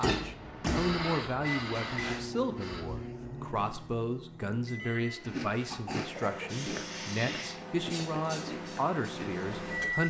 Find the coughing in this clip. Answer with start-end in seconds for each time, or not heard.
1.7-2.4, 5.4-6.5.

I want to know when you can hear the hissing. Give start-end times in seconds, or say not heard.
0.0-2.9, 6.5-10.0.